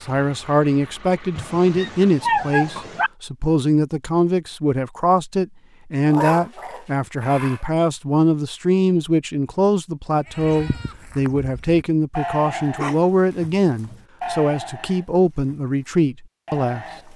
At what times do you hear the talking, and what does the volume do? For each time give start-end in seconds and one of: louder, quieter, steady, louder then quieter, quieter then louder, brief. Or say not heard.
0.0-16.9 steady.